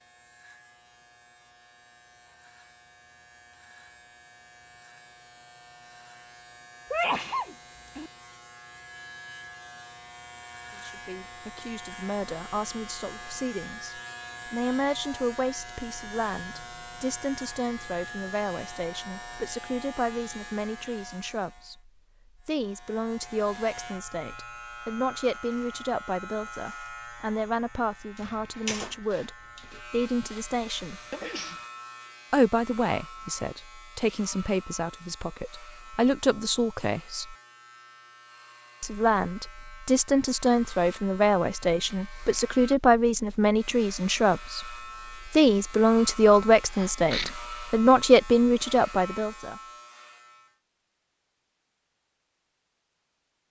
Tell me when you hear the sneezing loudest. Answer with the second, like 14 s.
7 s.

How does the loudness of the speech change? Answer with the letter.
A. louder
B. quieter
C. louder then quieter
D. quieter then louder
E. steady
A.